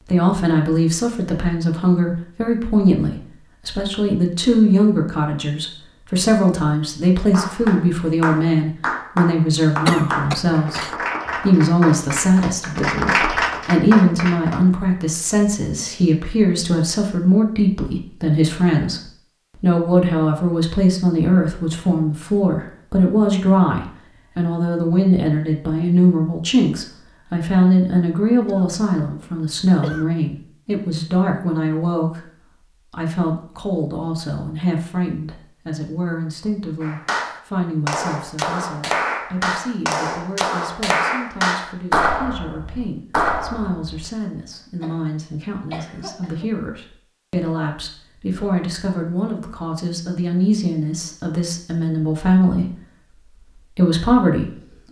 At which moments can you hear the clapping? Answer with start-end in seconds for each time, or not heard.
7.3-14.6, 36.8-44.1.